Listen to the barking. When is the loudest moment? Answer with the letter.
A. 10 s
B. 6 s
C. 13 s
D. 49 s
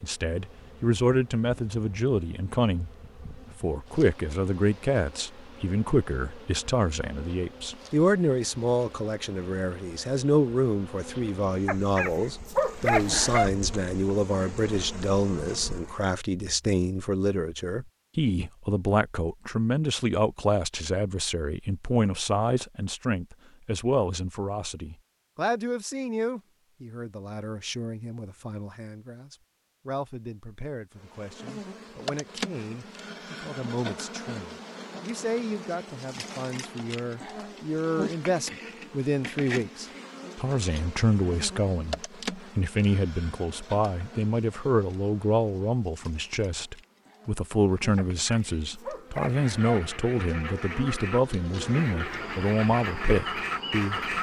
C.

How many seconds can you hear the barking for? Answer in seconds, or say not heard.
4 s.